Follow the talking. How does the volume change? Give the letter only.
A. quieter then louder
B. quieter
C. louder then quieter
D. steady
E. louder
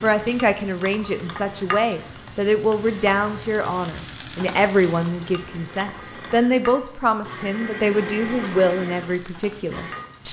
D.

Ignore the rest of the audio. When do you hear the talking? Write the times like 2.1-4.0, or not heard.
0.0-10.2.